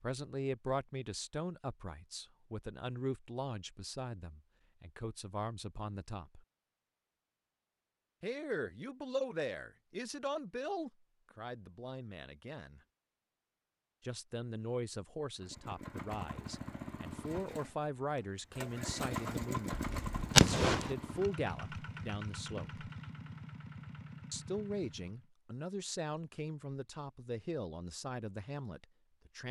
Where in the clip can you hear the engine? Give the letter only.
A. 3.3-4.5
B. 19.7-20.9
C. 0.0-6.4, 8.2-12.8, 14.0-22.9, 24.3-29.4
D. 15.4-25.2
D.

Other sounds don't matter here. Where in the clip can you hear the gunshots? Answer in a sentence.
You can hear the gunshots from 19.7 to 20.9 s.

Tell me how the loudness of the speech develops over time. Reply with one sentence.
The volume of the speech stays about the same.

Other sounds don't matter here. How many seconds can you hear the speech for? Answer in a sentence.
You can hear the speech for 25 seconds altogether.